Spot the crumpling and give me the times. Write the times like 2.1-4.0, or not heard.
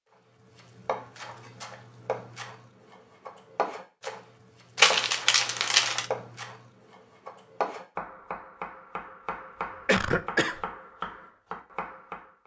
4.8-6.0.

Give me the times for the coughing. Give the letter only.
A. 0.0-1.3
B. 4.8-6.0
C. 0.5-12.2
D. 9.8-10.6
D.